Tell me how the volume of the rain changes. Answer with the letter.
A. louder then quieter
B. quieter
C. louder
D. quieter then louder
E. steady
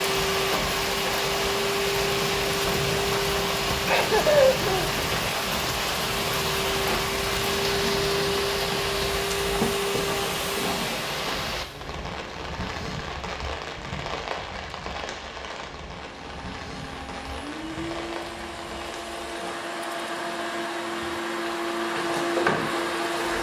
B.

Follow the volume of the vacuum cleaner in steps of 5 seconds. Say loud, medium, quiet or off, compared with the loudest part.
loud, loud, loud, medium, loud.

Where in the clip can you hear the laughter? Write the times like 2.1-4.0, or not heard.
3.9-5.0.